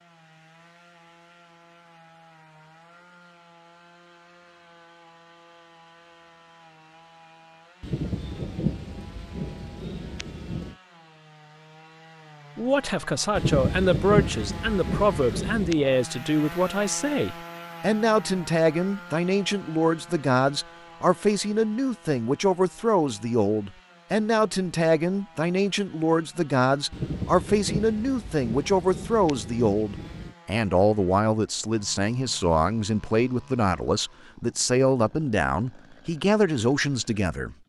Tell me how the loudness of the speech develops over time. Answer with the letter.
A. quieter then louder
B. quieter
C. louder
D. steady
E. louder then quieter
D.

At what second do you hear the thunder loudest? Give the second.
14 s.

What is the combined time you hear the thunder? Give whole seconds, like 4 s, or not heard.
9 s.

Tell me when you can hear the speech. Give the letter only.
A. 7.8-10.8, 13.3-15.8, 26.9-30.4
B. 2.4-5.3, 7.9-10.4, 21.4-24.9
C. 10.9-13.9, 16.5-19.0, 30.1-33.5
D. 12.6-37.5
D.